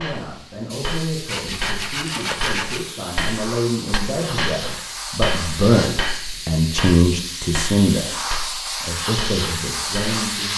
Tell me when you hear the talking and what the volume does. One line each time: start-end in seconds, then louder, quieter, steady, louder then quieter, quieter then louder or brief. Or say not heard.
0.0-10.5 louder then quieter.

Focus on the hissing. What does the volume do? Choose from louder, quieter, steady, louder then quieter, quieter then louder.
louder.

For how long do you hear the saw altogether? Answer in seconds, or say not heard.
2 s.